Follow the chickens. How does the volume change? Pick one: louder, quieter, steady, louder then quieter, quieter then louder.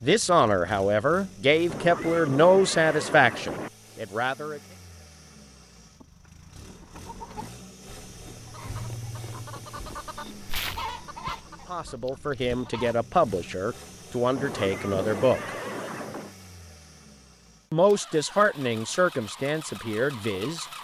louder then quieter.